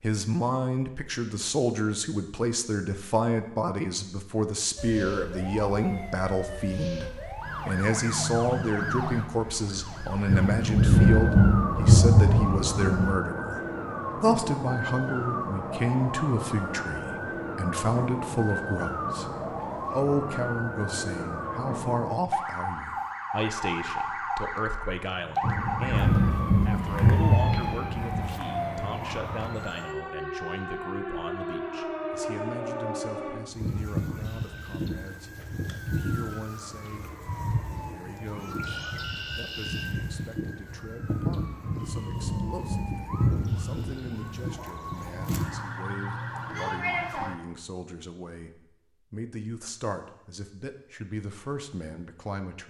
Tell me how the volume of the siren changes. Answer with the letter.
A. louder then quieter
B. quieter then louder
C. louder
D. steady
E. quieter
D.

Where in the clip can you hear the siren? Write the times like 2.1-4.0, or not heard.
4.8-47.4.